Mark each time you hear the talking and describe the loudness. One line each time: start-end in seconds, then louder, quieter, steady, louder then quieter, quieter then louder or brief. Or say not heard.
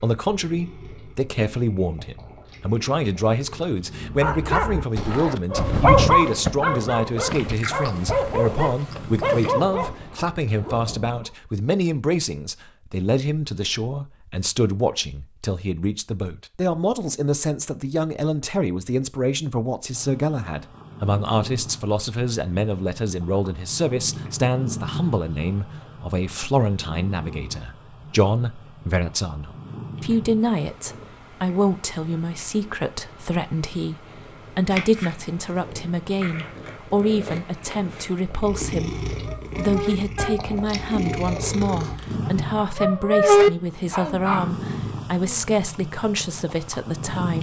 0.0-47.3 steady.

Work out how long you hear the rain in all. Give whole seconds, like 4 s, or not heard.
not heard.